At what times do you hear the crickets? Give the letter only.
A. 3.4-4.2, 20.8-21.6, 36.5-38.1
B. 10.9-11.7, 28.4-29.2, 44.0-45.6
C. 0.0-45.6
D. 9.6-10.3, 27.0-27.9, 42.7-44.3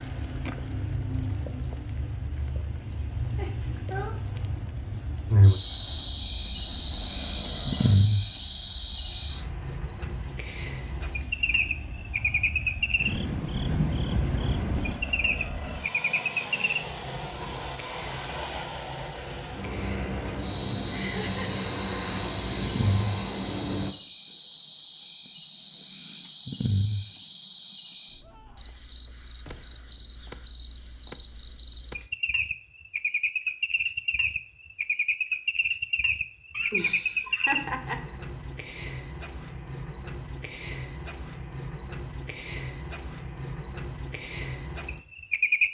C.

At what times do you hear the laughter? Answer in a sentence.
You can hear the laughter from 3.4 to 4.2 s, from 20.8 to 21.6 s and from 36.5 to 38.1 s.